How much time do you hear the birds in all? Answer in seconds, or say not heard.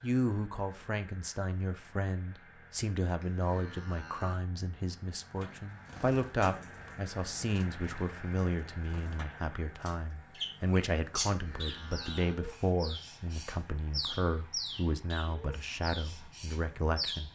12 s.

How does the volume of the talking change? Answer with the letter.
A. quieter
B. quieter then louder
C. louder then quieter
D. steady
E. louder
D.